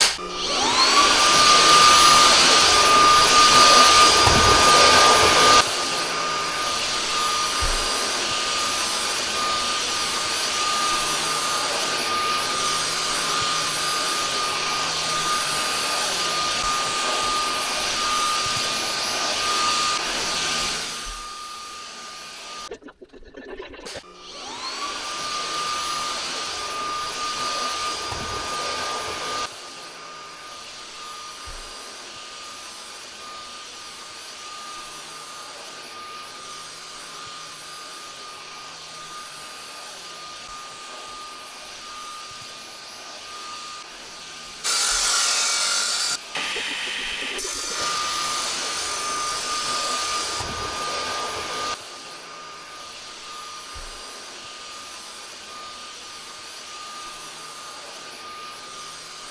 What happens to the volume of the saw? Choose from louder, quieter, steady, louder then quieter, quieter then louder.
quieter.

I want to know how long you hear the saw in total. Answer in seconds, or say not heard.
6 s.